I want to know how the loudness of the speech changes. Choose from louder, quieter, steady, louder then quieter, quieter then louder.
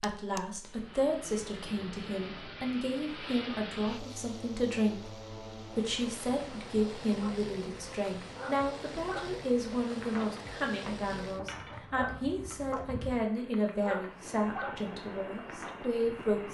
steady.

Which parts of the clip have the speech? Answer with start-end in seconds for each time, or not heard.
0.0-16.5.